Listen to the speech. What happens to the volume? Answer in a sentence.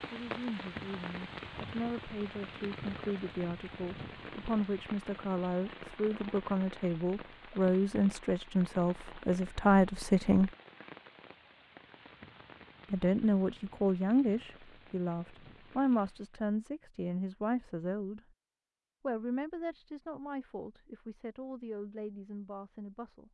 The volume of the speech goes up, then down.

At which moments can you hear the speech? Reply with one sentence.
You can hear the speech from 0.1 to 10.5 s, from 12.9 to 18.2 s and from 19.0 to 23.2 s.